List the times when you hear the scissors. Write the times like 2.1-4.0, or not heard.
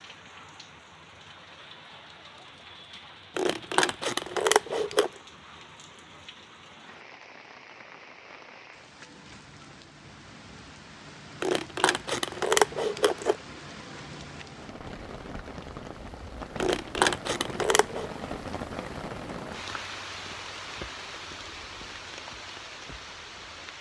3.4-5.1, 11.4-13.3, 16.6-18.1.